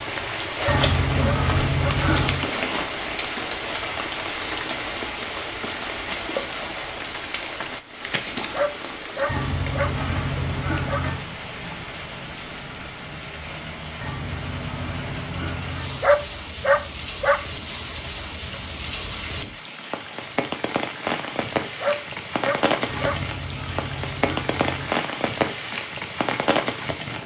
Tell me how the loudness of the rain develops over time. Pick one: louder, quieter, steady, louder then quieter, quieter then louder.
quieter then louder.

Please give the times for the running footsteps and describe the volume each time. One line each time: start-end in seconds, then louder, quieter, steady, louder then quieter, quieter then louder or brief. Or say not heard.
not heard.